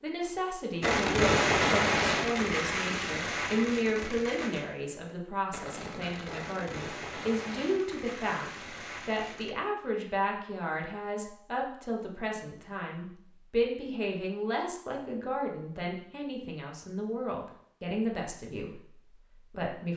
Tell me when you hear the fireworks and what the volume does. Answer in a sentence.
The fireworks can be heard from 0.8 to 9.6 s, getting quieter.